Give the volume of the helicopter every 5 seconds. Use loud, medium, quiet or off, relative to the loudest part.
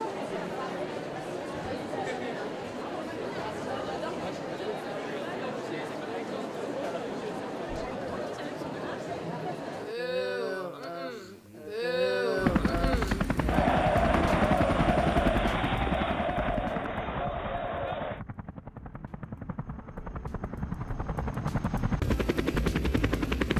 off, off, loud, medium, loud.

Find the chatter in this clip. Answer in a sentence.
The chatter can be heard from 0.0 to 18.2 s.